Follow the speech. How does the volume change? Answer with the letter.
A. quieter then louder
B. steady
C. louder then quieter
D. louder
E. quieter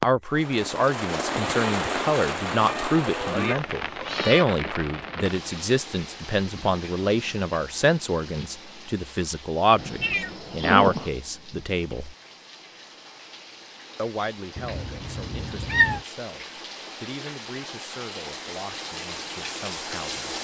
E.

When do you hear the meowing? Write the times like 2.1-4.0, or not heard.
2.6-4.5, 9.8-11.1, 14.6-16.0.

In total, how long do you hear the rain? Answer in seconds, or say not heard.
20 s.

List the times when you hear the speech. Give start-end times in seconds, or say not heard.
0.0-12.2, 13.9-20.3.